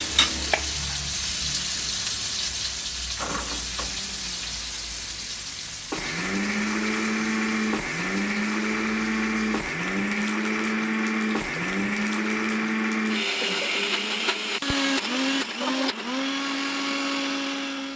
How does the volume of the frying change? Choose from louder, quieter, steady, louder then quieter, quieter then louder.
quieter.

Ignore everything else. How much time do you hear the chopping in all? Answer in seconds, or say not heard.
2 s.